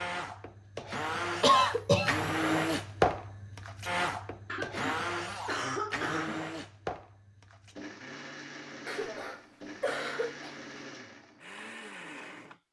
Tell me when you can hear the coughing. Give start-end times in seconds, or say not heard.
1.4-2.2, 4.5-6.4, 8.8-10.6.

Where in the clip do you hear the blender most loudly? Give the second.
3 s.